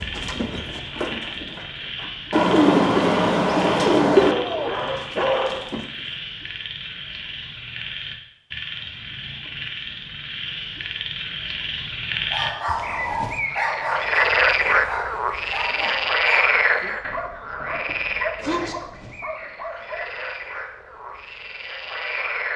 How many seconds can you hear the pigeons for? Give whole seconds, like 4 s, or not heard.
2 s.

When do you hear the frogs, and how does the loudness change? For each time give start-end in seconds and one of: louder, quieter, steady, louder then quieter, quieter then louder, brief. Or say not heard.
0.0-22.5 louder then quieter.